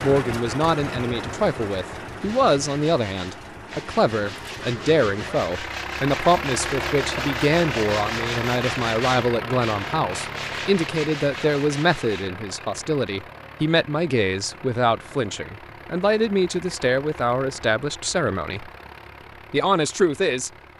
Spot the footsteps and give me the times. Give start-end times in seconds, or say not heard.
not heard.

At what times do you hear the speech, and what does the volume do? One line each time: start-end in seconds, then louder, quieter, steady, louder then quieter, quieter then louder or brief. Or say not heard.
0.0-18.7 steady
19.5-20.5 brief.